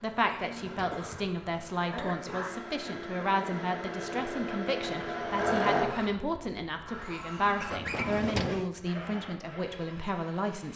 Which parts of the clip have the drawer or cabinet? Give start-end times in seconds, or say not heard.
0.2-1.1, 7.8-8.7.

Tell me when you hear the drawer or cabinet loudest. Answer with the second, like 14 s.
8 s.